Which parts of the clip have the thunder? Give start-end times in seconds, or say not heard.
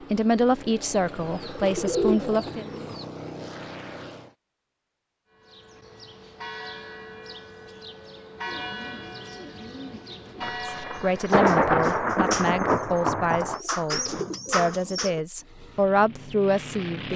10.4-13.6.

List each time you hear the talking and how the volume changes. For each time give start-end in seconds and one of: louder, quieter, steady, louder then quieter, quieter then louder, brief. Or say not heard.
0.1-2.6 brief
10.8-17.1 quieter then louder.